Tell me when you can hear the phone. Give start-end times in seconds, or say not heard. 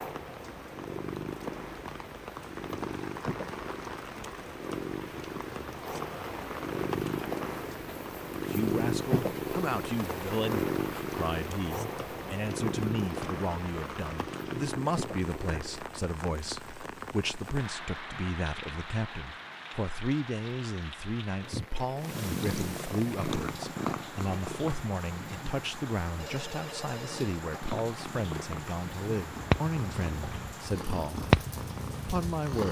26.2-27.4.